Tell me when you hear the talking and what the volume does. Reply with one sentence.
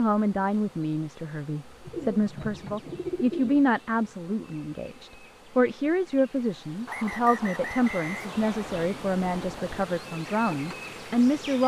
The talking can be heard from 0.0 to 11.6 s, at a steady volume.